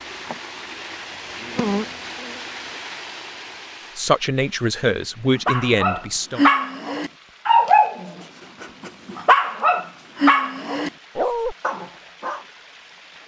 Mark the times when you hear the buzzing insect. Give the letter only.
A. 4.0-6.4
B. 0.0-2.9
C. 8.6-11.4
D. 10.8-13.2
B.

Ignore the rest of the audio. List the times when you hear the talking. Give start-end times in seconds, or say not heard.
4.0-6.4.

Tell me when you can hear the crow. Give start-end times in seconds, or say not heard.
not heard.